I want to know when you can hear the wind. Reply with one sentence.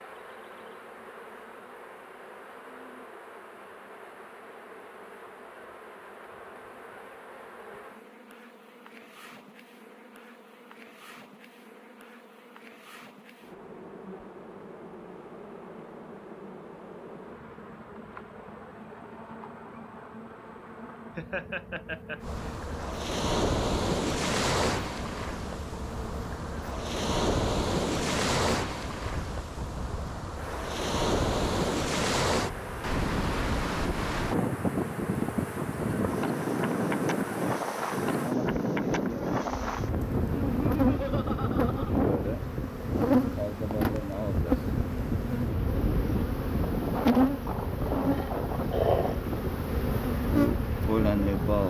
The wind can be heard from 22.2 to 51.6 s.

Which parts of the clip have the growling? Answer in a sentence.
You can hear the growling from 47.9 to 49.2 s.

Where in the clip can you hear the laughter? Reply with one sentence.
The laughter can be heard from 21.1 to 22.2 s and from 40.5 to 41.9 s.